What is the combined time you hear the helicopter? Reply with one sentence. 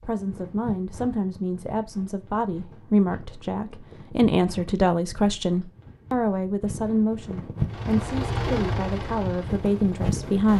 The helicopter can be heard for 3 seconds in total.